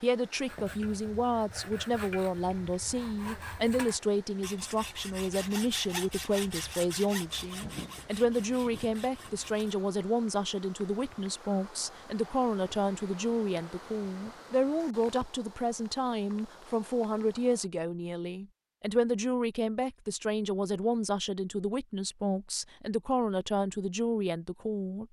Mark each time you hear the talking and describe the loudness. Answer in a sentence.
The talking can be heard from 0.0 to 25.0 s, at a steady volume.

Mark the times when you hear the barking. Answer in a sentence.
You can't hear the barking here.